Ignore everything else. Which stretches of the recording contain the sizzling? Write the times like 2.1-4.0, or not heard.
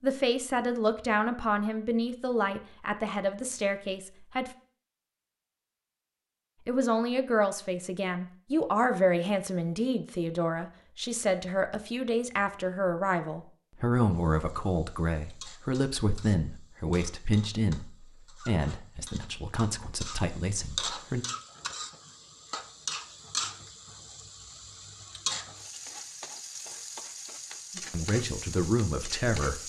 14.1-29.6.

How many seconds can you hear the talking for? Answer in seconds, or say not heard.
21 s.